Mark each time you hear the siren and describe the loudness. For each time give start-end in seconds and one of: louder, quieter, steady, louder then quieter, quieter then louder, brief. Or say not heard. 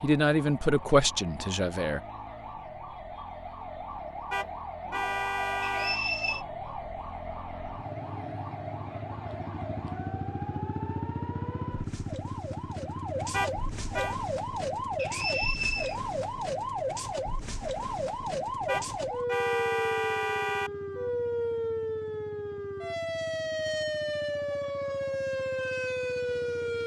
0.0-26.8 louder.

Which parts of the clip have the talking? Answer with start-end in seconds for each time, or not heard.
0.0-2.0.